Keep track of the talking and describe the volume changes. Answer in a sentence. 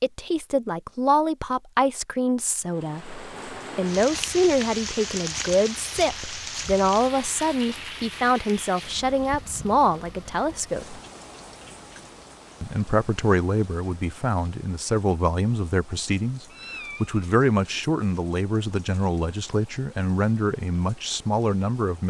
The loudness of the talking stays about the same.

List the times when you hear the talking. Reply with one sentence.
The talking can be heard from 0.0 to 11.0 s and from 12.6 to 22.0 s.